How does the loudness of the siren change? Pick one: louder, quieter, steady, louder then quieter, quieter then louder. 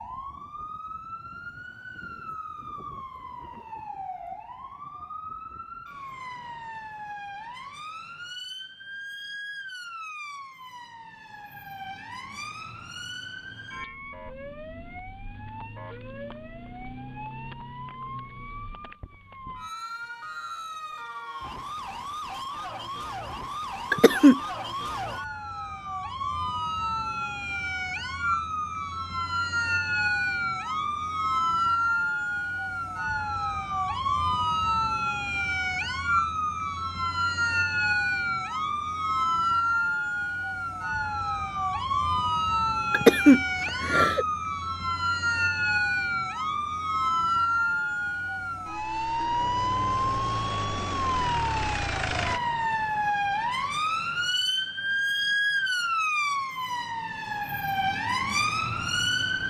louder.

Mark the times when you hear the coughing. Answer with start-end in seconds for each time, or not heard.
23.9-24.4, 42.9-44.2.